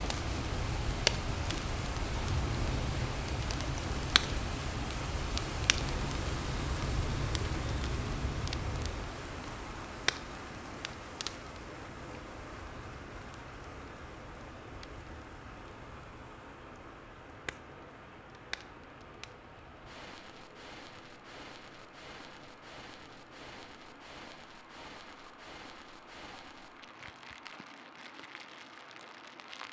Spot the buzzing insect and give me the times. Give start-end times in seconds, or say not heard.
not heard.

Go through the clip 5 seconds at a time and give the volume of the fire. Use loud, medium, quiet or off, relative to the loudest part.
loud, loud, medium, quiet, quiet, quiet.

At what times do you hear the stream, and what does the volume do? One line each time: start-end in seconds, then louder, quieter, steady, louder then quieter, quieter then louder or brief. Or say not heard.
0.0-29.6 quieter.